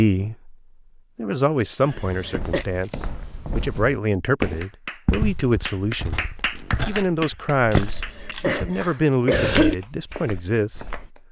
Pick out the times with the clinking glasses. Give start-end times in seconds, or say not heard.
not heard.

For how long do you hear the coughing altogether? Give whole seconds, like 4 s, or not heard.
3 s.